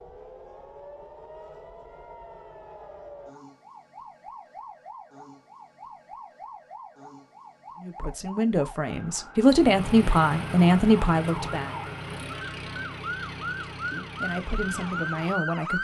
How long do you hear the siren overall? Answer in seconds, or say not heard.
16 s.